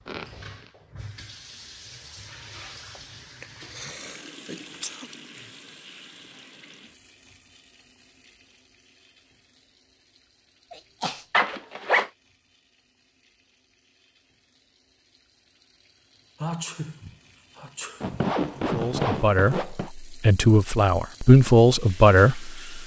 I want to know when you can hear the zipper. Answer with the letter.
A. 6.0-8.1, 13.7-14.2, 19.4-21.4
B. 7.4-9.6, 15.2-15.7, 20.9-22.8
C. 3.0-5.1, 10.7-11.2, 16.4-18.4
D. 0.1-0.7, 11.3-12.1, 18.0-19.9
D.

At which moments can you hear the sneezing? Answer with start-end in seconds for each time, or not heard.
3.0-5.1, 10.7-11.2, 16.4-18.4.